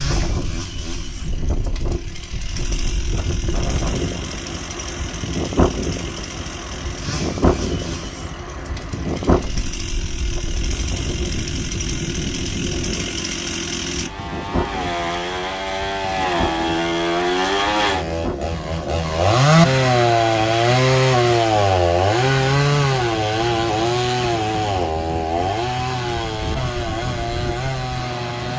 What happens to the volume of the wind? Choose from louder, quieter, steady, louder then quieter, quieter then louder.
quieter.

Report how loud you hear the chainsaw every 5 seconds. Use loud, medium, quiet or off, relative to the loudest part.
quiet, quiet, medium, loud, loud, medium.